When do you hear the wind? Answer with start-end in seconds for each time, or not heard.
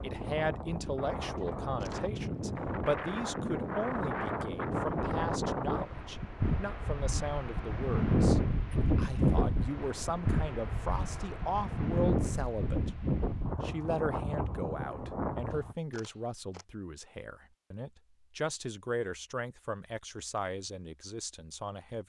0.0-15.8.